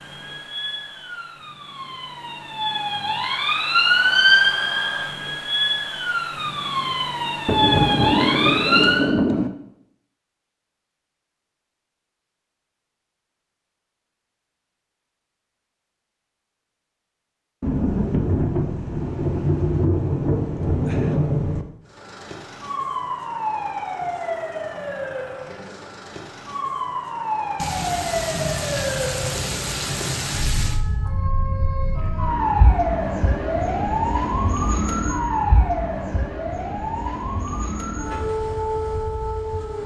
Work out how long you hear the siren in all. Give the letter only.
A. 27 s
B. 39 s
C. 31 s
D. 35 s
A.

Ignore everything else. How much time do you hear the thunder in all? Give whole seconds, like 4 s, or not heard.
9 s.